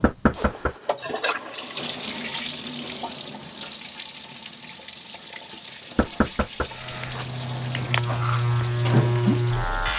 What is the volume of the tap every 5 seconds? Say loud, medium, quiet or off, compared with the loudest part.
loud, medium.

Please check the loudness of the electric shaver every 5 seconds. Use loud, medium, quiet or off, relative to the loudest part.
off, loud.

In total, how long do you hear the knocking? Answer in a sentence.
The knocking can be heard for 2 seconds in total.